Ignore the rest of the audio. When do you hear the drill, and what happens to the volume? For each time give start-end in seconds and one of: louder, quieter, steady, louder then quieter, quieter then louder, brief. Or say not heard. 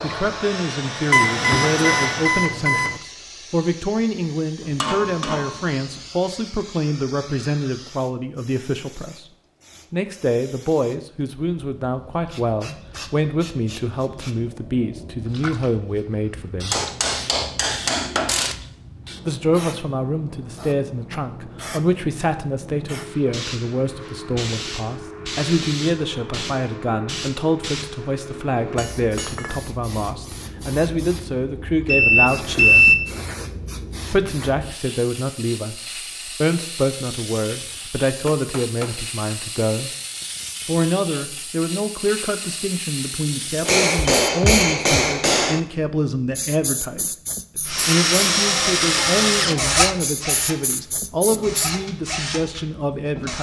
0.0-2.5 brief
47.6-53.3 quieter.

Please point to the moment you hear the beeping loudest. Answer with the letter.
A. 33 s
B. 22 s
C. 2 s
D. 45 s
A.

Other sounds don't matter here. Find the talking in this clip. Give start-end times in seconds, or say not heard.
0.0-9.2, 9.9-16.8, 19.2-32.9, 34.1-39.9, 40.6-53.3.